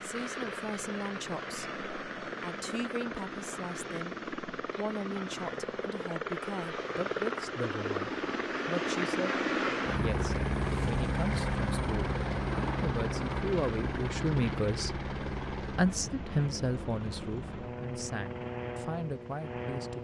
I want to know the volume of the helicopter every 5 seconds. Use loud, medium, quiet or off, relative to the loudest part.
medium, loud, loud, medium.